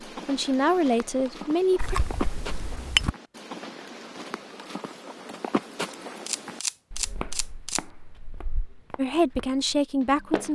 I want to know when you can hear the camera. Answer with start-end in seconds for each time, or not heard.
1.8-3.1, 6.2-7.8.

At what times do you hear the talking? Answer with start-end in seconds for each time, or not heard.
0.1-2.0, 8.9-10.5.